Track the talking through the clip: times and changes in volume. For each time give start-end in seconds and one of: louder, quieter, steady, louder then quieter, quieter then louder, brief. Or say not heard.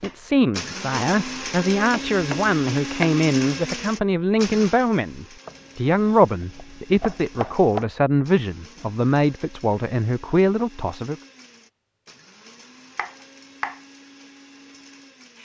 0.0-11.2 steady.